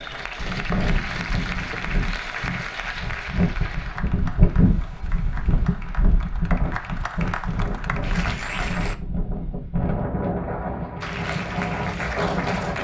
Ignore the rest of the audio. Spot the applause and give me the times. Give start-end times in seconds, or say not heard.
0.0-8.9, 11.0-12.7.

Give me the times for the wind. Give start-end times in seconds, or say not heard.
0.2-12.7.